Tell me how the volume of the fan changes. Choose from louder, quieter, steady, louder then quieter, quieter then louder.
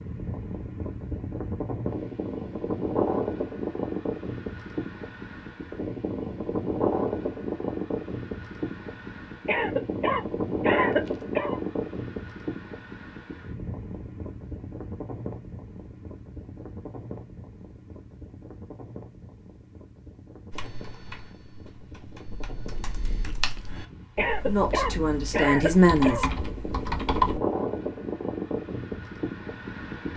quieter then louder.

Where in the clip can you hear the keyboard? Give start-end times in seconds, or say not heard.
20.5-27.4.